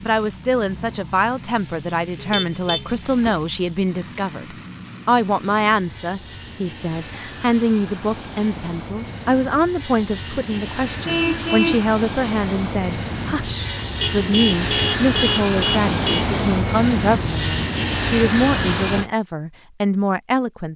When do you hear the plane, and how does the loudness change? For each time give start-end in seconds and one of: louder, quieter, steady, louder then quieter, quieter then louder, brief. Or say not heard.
0.0-19.1 louder.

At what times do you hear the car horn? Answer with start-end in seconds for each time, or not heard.
2.1-3.4, 11.1-11.8, 14.0-16.2.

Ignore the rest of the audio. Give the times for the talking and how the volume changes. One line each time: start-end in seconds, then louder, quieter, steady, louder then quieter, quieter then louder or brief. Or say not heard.
0.0-20.7 steady.